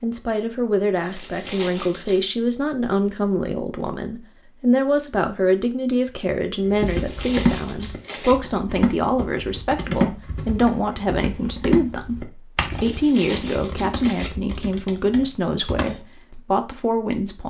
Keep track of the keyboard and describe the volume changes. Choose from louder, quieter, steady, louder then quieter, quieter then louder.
quieter.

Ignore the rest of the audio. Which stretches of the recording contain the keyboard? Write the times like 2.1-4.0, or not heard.
6.7-16.4.